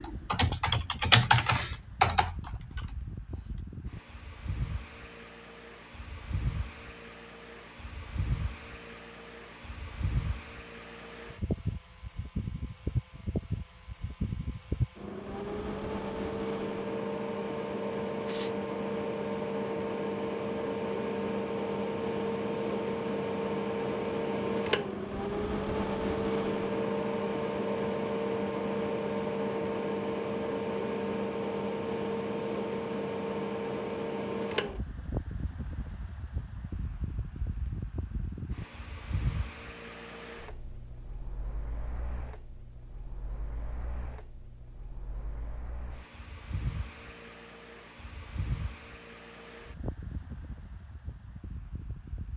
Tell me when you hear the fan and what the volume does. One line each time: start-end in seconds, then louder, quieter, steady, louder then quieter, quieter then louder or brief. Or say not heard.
0.0-52.3 louder then quieter.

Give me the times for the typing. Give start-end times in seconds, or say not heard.
0.0-3.4.